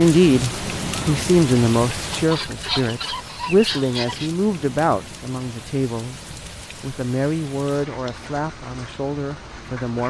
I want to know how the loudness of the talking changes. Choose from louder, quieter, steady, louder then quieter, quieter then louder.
quieter.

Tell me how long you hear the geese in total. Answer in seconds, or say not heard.
2 s.